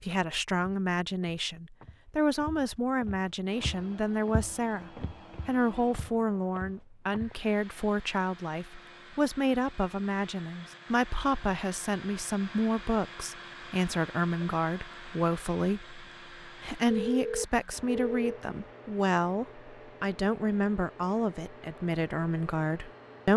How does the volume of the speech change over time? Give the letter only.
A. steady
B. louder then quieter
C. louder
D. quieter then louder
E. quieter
A.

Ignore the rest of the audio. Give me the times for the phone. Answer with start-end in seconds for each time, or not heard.
16.9-18.4.